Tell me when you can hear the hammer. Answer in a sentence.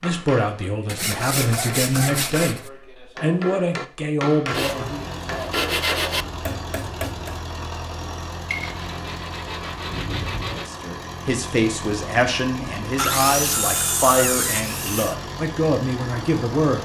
You can hear the hammer from 0.0 to 7.4 s.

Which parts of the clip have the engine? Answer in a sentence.
The engine can be heard from 4.5 to 16.8 s.